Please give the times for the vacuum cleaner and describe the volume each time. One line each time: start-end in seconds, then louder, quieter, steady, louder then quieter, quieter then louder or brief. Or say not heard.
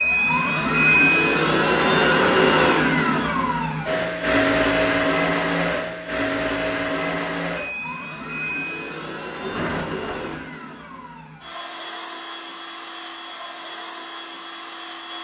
0.0-15.2 quieter.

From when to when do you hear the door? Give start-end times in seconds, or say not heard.
9.4-10.5.